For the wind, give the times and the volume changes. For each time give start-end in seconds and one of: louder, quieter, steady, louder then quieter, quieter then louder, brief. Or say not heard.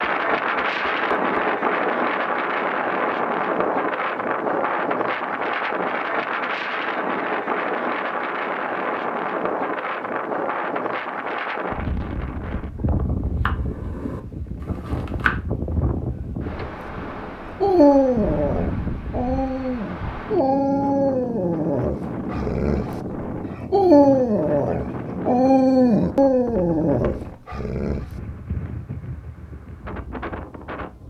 0.0-31.0 quieter.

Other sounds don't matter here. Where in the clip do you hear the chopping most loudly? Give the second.
15 s.